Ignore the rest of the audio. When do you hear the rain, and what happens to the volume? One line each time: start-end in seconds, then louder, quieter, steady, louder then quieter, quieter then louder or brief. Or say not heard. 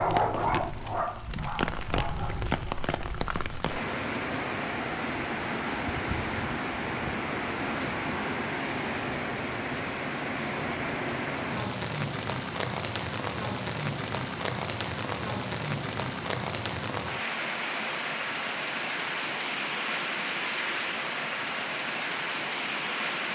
0.0-23.3 steady.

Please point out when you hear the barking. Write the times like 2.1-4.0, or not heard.
0.0-2.5.